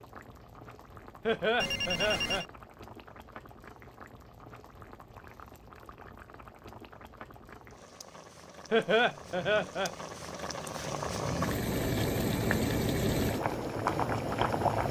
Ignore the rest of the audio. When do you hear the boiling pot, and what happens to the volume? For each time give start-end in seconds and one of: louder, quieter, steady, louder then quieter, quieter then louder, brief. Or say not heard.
0.0-14.8 louder.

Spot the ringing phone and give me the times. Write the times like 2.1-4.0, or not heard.
1.6-2.5.